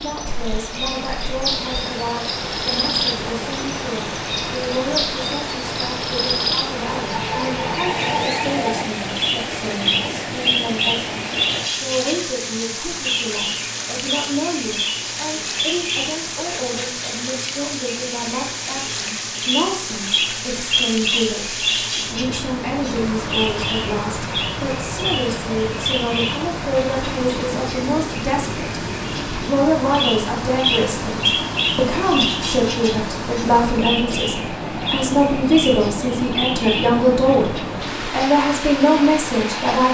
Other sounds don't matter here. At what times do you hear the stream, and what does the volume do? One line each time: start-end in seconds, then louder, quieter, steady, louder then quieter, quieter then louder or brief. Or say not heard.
0.0-39.9 steady.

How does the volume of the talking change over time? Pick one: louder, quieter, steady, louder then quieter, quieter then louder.
louder.